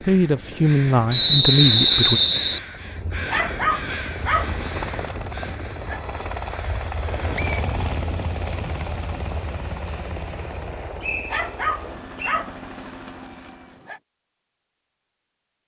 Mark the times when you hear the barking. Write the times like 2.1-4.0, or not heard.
3.3-6.0, 11.3-14.0.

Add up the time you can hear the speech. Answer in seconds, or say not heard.
2 s.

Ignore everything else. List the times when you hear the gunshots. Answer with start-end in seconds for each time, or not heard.
not heard.